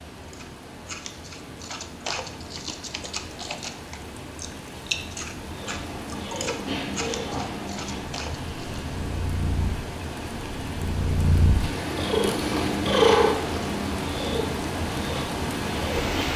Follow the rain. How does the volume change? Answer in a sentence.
The loudness of the rain goes up.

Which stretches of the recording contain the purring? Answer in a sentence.
You can hear the purring from 5.4 to 16.3 s.